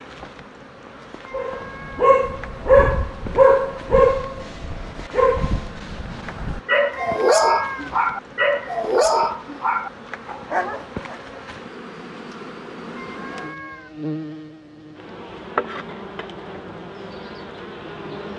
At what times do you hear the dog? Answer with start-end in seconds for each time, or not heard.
1.3-11.2.